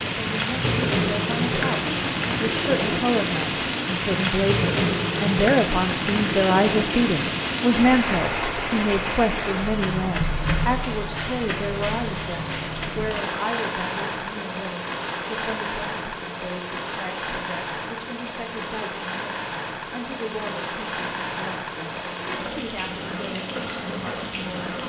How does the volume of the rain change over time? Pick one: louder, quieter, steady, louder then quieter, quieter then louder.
quieter.